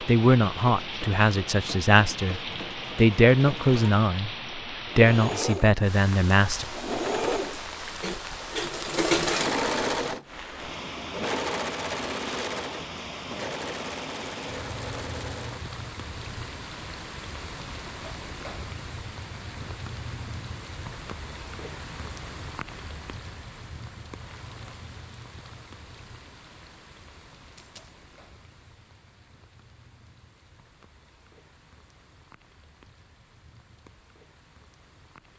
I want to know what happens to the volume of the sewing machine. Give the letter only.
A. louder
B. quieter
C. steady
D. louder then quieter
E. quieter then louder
D.